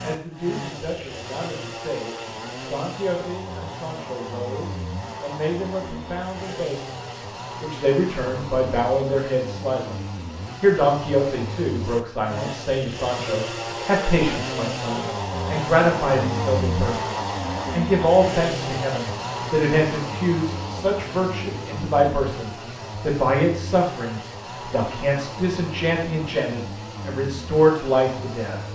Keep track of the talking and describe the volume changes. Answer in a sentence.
The loudness of the talking goes up.